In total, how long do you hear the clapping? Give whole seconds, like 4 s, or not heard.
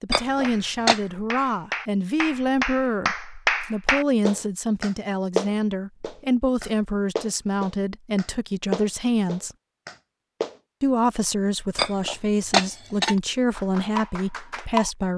12 s.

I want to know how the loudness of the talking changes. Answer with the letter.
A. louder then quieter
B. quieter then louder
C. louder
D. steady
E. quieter
D.